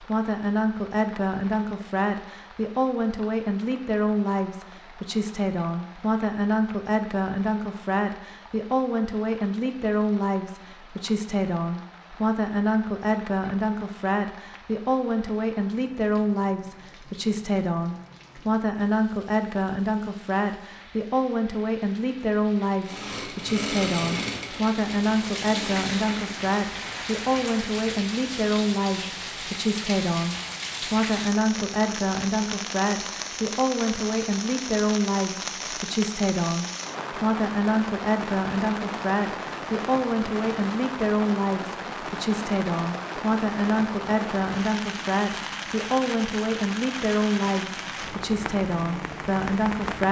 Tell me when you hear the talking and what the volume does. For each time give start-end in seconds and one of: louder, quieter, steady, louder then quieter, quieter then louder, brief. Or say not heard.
0.0-50.0 steady.